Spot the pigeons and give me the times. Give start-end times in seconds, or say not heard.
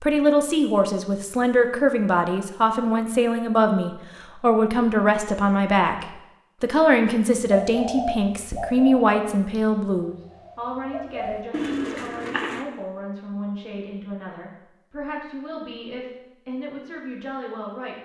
7.5-12.7.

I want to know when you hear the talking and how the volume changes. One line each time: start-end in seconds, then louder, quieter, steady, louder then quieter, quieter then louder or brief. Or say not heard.
0.0-17.9 quieter.